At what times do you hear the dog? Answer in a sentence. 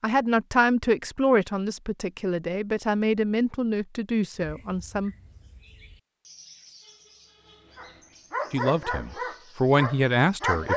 The dog can be heard from 7.8 to 10.7 s.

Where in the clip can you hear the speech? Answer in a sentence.
You can hear the speech from 0.0 to 5.2 s and from 8.5 to 10.7 s.